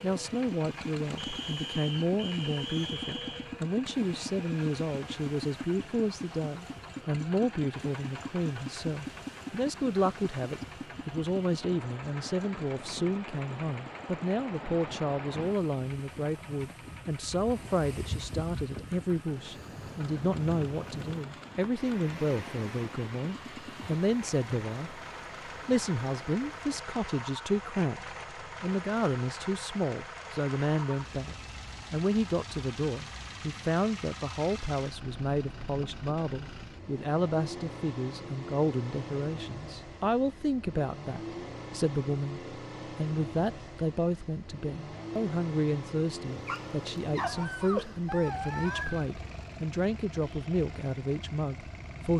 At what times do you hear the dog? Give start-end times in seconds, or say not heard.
46.3-49.0.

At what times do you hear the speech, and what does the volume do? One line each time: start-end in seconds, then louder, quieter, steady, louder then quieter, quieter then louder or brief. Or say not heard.
0.0-25.1 steady
25.6-52.1 steady.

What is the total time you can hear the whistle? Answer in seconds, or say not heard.
2 s.